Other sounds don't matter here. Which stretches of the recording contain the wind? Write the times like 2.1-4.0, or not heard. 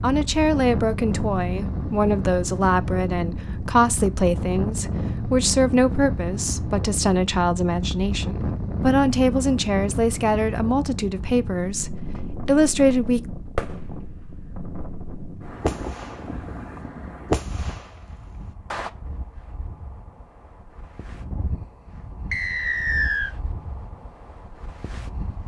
0.0-25.4.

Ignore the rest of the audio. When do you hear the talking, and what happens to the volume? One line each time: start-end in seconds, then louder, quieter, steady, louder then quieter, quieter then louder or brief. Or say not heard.
0.0-13.2 steady.